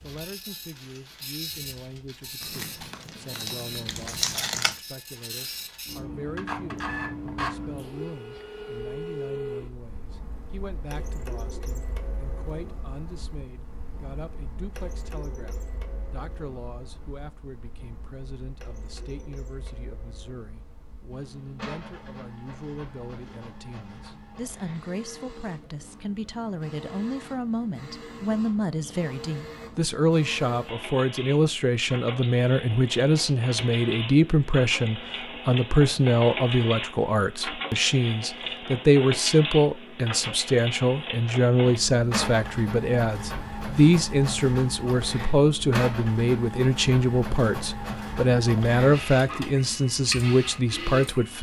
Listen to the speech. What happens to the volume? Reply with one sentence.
The loudness of the speech goes up.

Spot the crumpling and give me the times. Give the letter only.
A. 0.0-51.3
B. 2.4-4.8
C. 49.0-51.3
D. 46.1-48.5
B.